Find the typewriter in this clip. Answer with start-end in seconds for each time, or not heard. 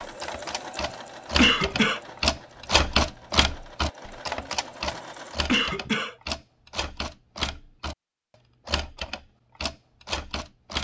0.0-8.0, 8.7-10.7.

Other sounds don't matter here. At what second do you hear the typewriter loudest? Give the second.
3 s.